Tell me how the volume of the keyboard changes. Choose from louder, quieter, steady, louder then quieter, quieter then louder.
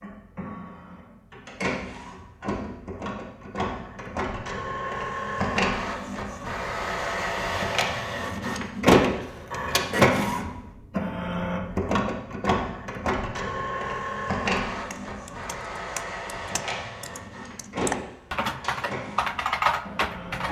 louder.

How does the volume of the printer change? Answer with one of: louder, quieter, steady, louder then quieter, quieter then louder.
louder then quieter.